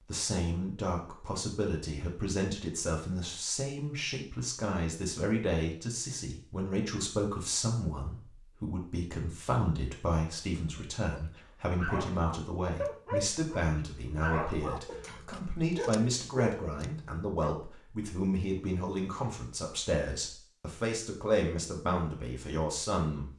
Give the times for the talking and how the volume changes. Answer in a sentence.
The talking can be heard from 0.1 to 23.2 s, at a steady volume.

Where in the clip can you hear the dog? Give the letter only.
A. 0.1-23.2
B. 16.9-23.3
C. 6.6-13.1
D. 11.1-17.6
D.